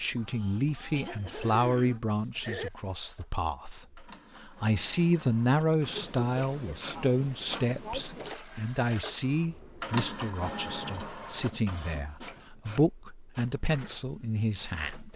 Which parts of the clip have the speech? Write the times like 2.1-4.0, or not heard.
0.0-15.1.